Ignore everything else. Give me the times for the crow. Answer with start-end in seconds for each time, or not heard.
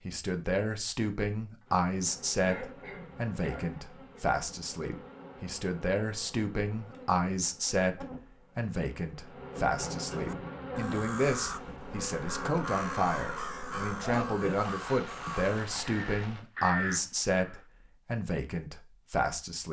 10.1-17.6.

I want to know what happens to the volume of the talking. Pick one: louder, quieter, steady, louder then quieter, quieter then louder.
steady.